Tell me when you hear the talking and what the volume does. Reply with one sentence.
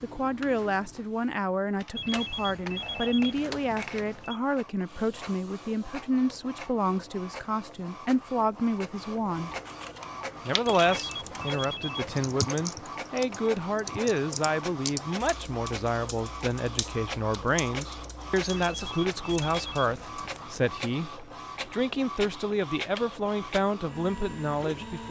The talking can be heard from 0.0 to 9.6 s, at a steady volume; and from 10.4 to 25.0 s, at a steady volume.